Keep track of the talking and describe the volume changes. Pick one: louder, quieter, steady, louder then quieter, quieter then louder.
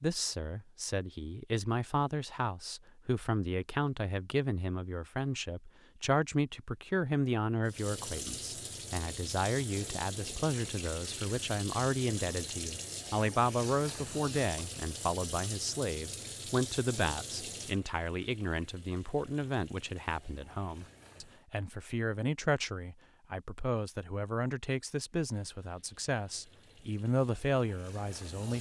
steady.